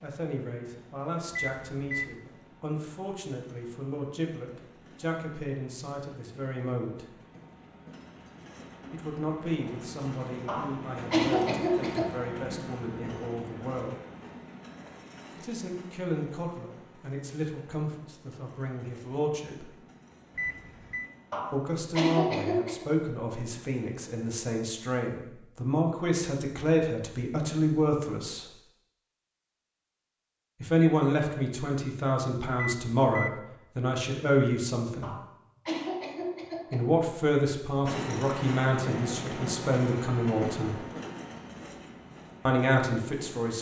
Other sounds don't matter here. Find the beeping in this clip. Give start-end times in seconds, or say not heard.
1.3-2.1, 20.4-21.1, 32.6-33.4.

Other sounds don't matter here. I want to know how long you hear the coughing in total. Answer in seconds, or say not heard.
5 s.